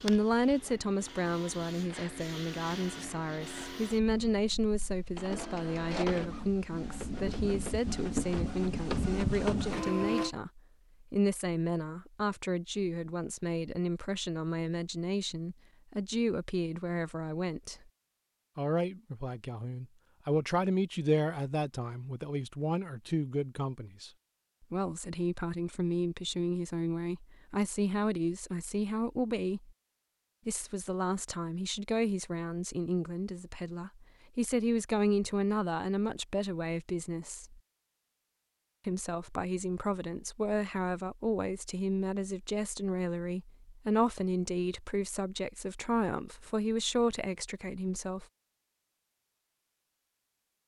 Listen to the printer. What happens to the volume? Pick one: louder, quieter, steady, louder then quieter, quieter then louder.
louder.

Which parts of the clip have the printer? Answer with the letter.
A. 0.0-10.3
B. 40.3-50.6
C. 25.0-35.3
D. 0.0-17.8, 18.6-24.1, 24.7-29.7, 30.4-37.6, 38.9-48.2
A.